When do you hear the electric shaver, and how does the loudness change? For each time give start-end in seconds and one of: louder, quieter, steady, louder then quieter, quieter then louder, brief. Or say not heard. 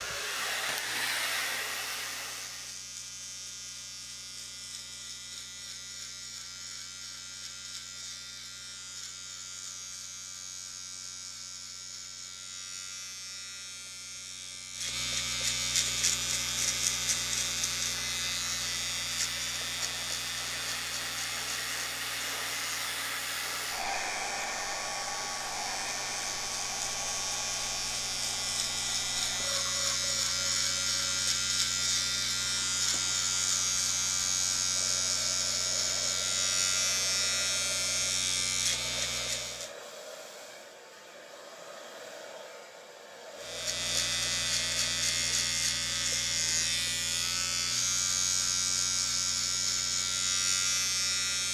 0.0-39.7 louder
43.4-51.4 steady.